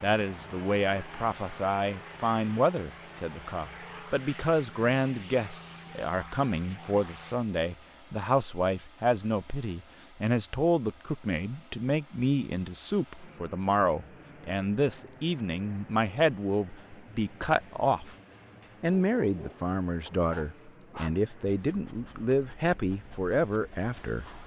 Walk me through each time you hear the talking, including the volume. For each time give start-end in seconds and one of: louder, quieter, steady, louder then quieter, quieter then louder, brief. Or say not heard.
0.0-18.1 steady
18.8-24.2 steady.